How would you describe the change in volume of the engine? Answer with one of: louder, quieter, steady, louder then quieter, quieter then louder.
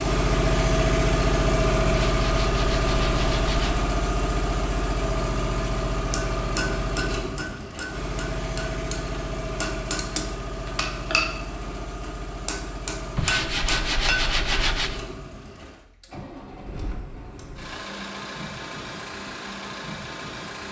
quieter.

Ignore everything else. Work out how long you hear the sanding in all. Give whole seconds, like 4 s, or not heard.
4 s.